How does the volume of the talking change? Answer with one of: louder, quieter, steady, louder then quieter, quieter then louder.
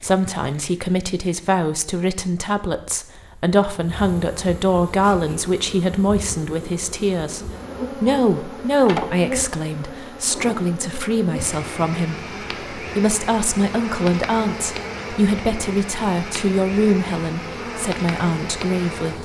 steady.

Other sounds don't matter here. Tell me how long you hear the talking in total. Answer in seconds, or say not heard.
19 s.